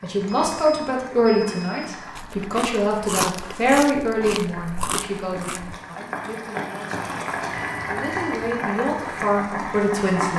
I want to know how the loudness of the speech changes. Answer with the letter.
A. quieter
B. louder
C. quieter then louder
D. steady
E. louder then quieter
C.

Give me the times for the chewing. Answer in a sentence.
You can hear the chewing from 2.1 to 5.8 s.